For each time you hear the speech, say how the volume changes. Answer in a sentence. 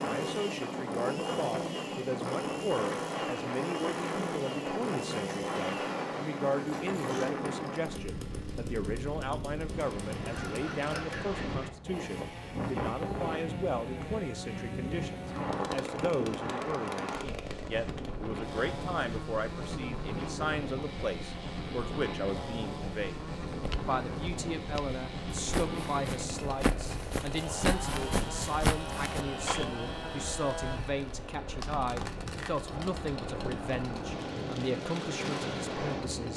The speech can be heard from 0.0 to 36.3 s, at a steady volume.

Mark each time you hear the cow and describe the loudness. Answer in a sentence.
You can't hear the cow here.